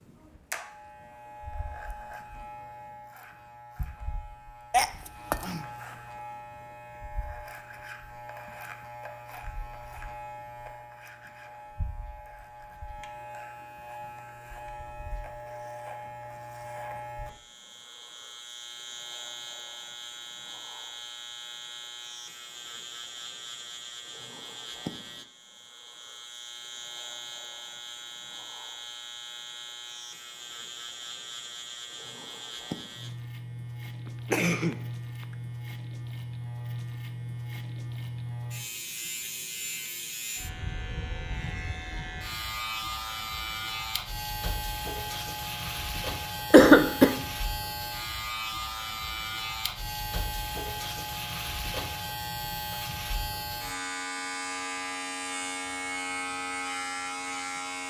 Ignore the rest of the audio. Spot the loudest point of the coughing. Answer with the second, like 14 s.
47 s.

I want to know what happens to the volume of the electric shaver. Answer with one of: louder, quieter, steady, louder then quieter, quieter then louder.
louder.